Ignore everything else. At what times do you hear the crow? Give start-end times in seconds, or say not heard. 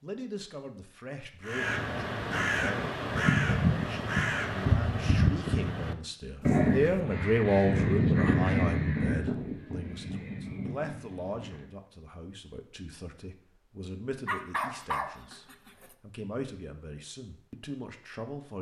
1.4-11.7.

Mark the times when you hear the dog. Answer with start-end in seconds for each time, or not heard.
6.4-6.8, 14.2-15.9.